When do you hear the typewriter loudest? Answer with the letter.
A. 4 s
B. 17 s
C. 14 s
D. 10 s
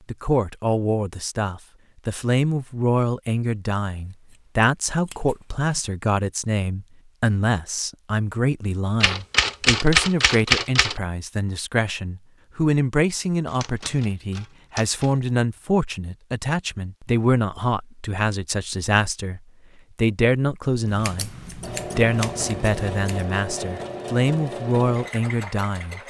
D.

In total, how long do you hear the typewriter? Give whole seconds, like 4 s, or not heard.
4 s.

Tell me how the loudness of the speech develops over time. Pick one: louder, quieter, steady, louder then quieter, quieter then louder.
steady.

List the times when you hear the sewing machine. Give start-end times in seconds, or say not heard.
21.1-26.0.